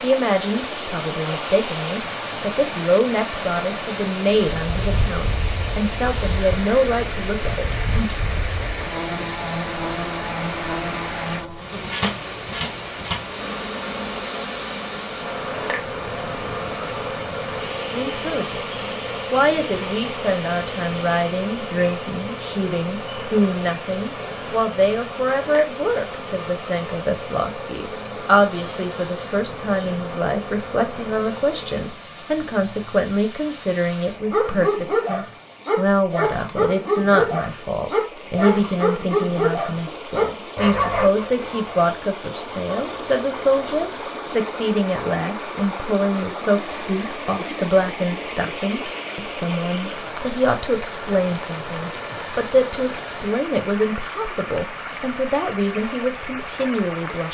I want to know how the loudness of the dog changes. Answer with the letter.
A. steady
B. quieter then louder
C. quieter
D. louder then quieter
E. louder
C.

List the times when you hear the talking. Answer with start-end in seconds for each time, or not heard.
0.0-8.2, 17.9-57.2.